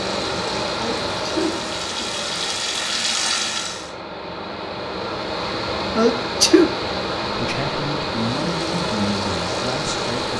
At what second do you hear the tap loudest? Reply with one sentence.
The loudest moment of the tap is at 3 seconds.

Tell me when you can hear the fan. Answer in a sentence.
You can hear the fan from 0.0 to 10.3 s.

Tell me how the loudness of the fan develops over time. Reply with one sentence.
The volume of the fan goes down, then up.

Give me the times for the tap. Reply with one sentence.
The tap can be heard from 0.0 to 4.0 s and from 8.3 to 10.3 s.